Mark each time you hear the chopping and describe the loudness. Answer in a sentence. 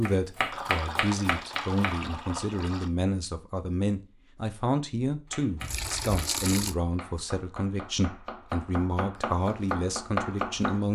You can hear the chopping briefly from 0.0 to 2.0 s; and from 5.2 to 10.8 s, getting louder.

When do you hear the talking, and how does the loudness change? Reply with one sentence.
The talking can be heard from 0.0 to 10.8 s, at a steady volume.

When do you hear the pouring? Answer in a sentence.
The pouring can be heard from 0.5 to 2.9 s and from 5.6 to 6.8 s.